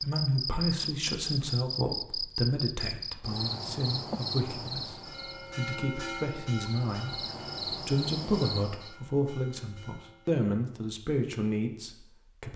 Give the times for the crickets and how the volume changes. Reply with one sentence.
The crickets can be heard from 0.0 to 8.9 s, getting quieter then louder.